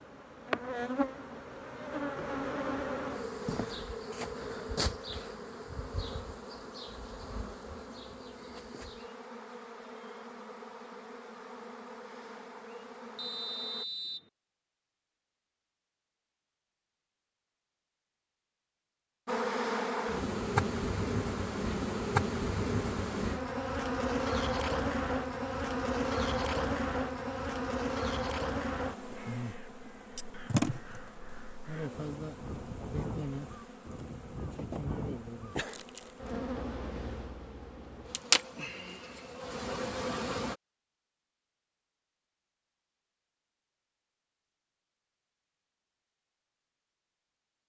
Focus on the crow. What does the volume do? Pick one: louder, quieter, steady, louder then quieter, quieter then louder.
louder.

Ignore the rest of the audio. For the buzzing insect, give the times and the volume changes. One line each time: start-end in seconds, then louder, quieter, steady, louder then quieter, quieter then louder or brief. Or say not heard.
0.0-13.8 quieter
19.2-40.5 quieter then louder.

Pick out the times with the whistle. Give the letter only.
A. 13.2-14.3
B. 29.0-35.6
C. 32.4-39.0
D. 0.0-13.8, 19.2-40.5
A.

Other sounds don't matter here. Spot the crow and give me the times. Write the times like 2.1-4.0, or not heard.
29.0-35.6.